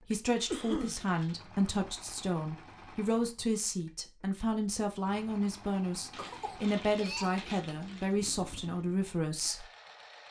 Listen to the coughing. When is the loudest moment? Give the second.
1 s.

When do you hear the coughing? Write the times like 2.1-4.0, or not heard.
0.5-1.0, 6.2-7.5.